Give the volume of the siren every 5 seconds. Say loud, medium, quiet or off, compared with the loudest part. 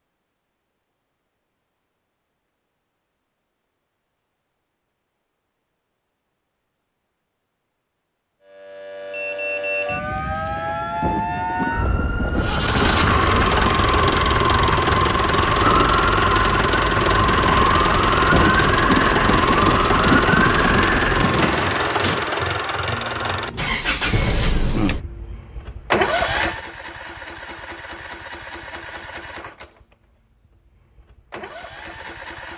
off, loud, loud, loud, loud, off, off.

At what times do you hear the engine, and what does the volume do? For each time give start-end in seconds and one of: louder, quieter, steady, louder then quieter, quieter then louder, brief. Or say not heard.
12.3-32.5 quieter.